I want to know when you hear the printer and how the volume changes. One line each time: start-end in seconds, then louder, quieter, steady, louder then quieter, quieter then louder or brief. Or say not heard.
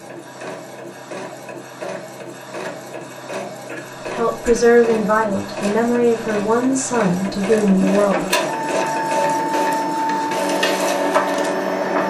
0.0-12.0 louder.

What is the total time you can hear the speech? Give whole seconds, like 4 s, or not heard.
4 s.